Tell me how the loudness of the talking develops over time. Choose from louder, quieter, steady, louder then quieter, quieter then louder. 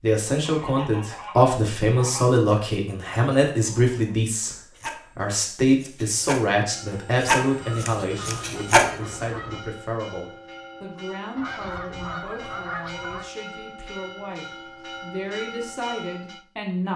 quieter.